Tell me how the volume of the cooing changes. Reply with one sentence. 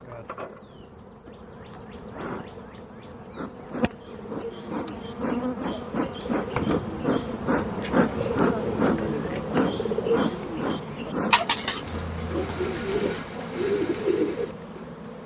The loudness of the cooing goes up.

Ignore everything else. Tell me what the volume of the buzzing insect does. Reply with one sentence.
The volume of the buzzing insect goes up, then down.